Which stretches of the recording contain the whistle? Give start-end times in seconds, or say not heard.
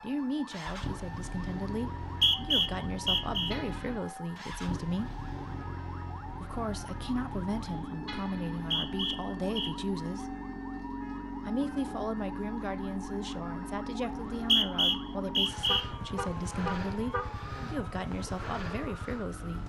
2.0-3.5, 8.6-9.7, 14.1-15.8.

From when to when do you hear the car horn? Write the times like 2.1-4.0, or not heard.
3.5-4.2, 8.1-8.8, 15.6-17.9.